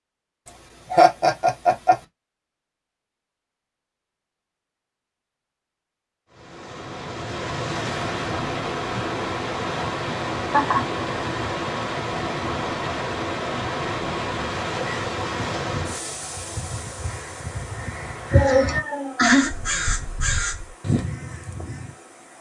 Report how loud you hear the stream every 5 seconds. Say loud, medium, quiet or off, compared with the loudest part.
off, loud, loud, medium, quiet.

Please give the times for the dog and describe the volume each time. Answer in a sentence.
You can't hear the dog here.